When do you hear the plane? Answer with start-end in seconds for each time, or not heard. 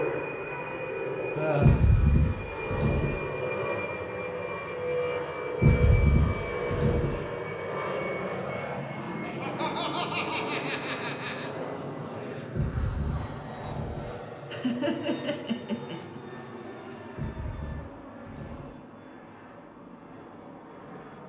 0.0-21.2.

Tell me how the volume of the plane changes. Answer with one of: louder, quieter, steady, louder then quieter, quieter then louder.
quieter.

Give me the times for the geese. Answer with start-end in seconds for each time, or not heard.
1.6-3.2, 5.6-7.2, 12.6-14.2, 17.1-18.8.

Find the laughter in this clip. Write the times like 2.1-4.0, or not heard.
1.4-1.9, 9.0-11.5, 14.5-16.4.